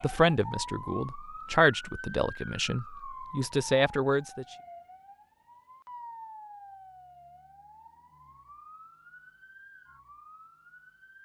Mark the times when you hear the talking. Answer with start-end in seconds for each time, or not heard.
0.0-4.5.